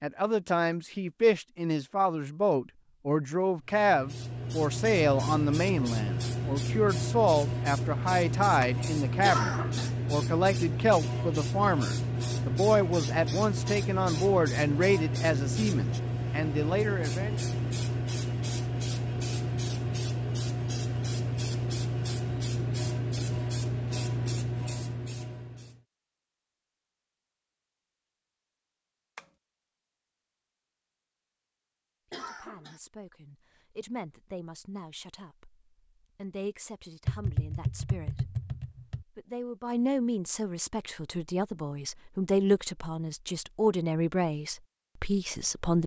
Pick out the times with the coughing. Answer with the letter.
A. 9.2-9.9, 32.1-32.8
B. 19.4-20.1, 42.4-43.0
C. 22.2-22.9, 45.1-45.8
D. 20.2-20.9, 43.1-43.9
A.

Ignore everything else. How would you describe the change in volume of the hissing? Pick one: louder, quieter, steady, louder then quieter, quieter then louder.
steady.